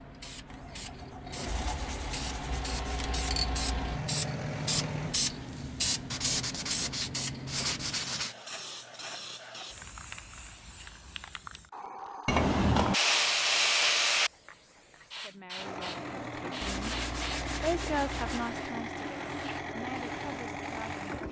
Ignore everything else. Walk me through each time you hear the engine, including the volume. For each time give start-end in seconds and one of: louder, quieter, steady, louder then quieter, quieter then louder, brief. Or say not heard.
0.0-5.2 louder
15.6-21.2 steady.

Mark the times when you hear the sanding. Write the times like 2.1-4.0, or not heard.
1.5-3.1, 6.1-8.3, 12.2-14.3, 16.6-18.5.